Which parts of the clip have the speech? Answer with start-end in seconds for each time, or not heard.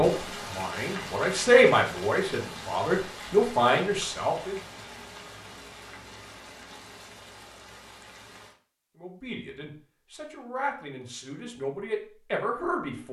0.0-4.5, 9.0-13.0.